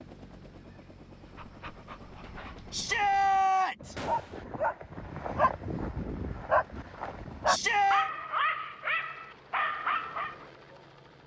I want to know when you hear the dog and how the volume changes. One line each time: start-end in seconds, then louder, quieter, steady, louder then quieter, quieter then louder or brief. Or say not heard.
1.1-10.4 louder.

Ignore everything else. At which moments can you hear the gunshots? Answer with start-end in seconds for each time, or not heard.
4.0-4.5.